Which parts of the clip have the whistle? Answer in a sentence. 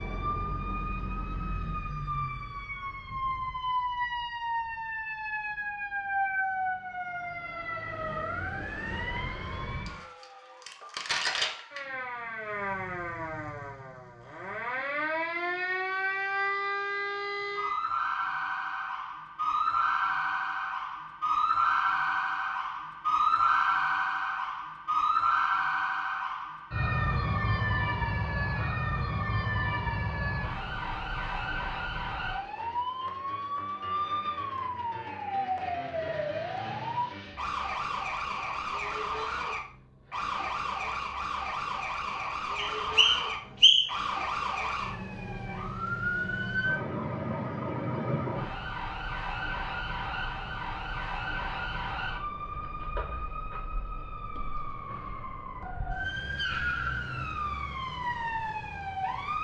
You can hear the whistle from 42.8 to 44.0 s.